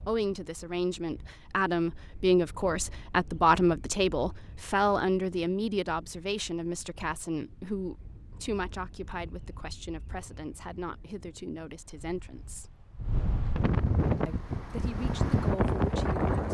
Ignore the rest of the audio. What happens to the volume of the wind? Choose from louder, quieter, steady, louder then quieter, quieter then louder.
louder.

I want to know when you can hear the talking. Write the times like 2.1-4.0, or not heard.
0.1-12.8, 14.2-16.4.